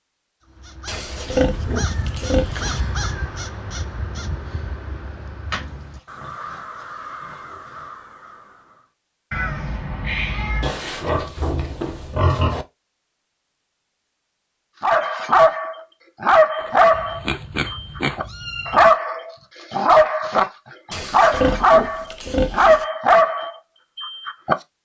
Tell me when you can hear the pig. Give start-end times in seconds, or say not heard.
0.8-2.8, 5.5-7.8, 10.6-12.7, 16.6-18.2, 20.9-22.9.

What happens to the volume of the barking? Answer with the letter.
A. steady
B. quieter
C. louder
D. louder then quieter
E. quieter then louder
E.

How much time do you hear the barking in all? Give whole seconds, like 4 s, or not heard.
10 s.